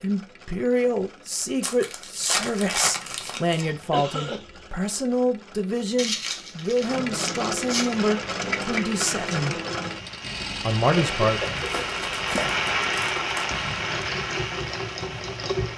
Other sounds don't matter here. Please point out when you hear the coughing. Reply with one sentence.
You can hear the coughing from 3.6 to 4.5 s and from 10.9 to 11.8 s.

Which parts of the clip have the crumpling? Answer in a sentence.
The crumpling can be heard from 1.6 to 3.6 s, from 6.0 to 8.0 s and from 11.6 to 13.4 s.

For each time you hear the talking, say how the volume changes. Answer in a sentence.
The talking can be heard from 0.0 to 9.6 s, at a steady volume; and briefly from 10.6 to 11.4 s.